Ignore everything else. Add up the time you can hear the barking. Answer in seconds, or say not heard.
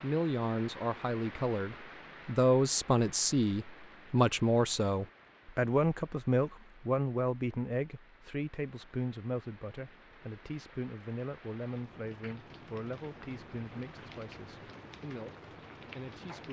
not heard.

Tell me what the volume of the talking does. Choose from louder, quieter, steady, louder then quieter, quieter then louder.
quieter.